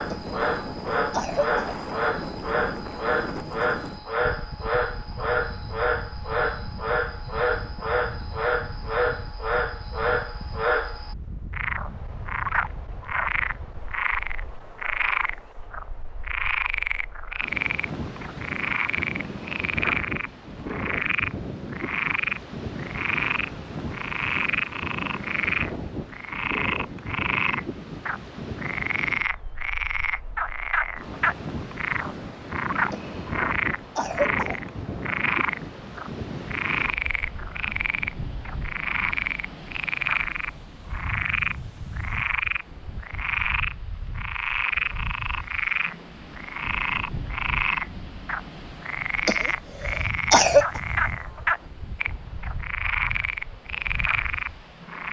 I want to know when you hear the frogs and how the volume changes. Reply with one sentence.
The frogs can be heard from 0.0 to 55.0 s, at a steady volume.